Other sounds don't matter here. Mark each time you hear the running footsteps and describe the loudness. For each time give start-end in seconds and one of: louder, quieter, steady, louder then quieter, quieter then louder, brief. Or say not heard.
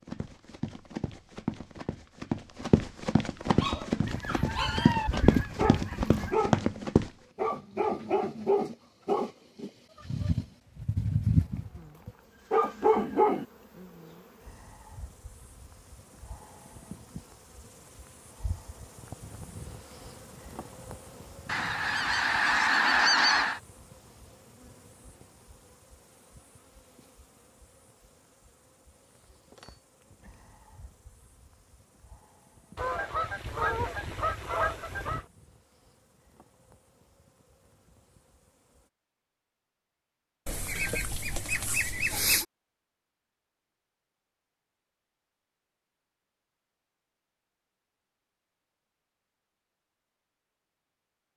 0.1-7.1 louder.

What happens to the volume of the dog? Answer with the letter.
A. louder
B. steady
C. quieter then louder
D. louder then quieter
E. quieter
A.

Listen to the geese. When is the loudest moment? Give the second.
23 s.